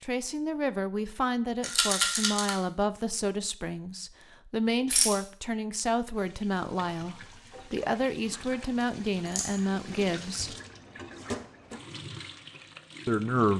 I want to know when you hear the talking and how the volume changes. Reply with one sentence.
You can hear the talking from 0.0 to 10.6 s, at a steady volume; and briefly from 13.1 to 13.5 s.